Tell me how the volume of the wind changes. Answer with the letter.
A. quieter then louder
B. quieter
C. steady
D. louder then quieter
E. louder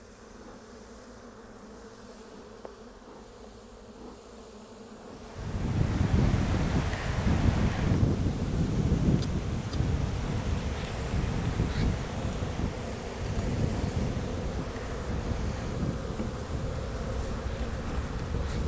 B.